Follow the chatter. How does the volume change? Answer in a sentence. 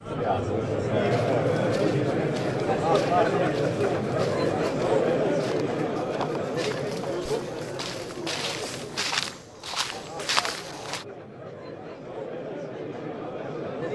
The loudness of the chatter goes down.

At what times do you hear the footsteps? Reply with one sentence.
The footsteps can be heard from 0.9 to 11.1 s.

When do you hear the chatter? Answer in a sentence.
The chatter can be heard from 0.0 to 13.8 s.